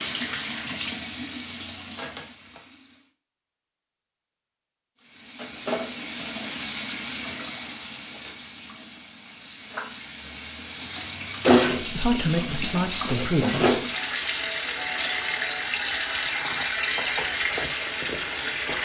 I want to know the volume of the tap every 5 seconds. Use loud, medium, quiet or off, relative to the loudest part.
medium, medium, loud, loud.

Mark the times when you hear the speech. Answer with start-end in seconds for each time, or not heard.
11.8-13.8.